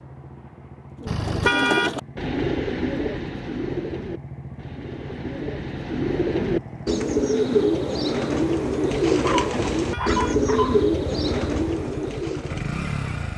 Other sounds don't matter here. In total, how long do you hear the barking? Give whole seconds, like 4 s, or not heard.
2 s.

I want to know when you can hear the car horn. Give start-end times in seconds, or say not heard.
1.1-1.9, 9.8-10.4.